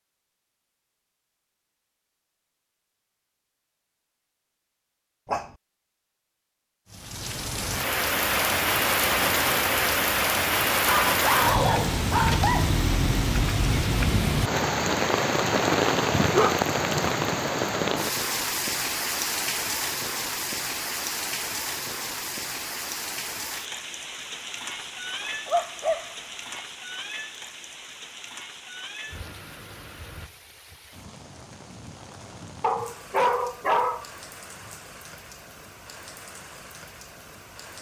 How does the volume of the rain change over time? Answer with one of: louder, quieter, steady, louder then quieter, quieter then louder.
quieter.